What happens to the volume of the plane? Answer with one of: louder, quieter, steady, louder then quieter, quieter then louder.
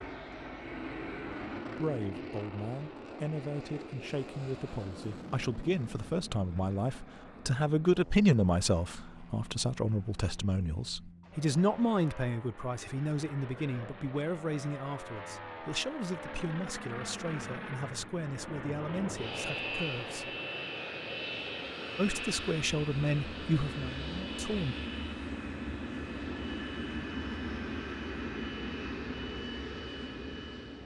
quieter then louder.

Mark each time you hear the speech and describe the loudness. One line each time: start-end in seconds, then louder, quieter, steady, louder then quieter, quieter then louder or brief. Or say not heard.
1.6-20.3 louder then quieter
21.9-24.8 brief.